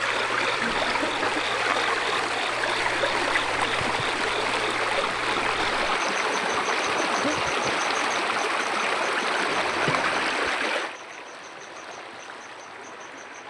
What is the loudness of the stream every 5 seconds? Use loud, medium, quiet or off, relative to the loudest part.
loud, loud, medium.